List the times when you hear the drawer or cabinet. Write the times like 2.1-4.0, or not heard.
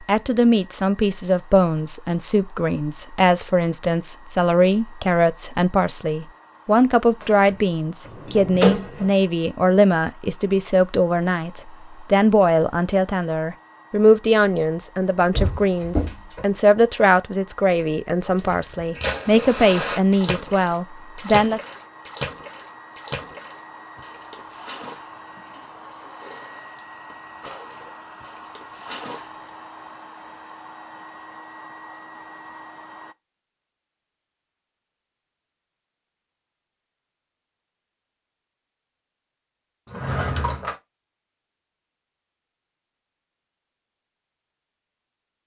7.2-9.1, 15.3-16.4, 39.9-40.8.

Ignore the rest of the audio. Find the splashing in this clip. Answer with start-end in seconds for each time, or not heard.
18.4-29.5.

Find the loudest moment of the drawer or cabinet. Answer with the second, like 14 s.
9 s.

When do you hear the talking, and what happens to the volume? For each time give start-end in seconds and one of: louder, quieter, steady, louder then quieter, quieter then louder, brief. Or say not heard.
0.0-21.6 steady.